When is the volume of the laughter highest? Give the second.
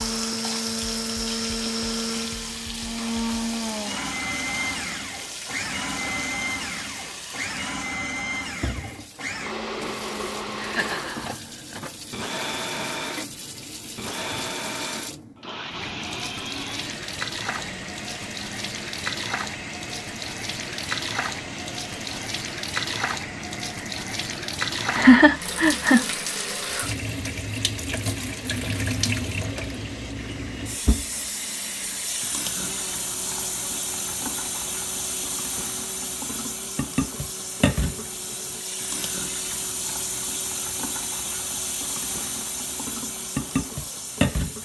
25 s.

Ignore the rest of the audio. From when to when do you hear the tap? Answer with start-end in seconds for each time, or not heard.
0.0-44.6.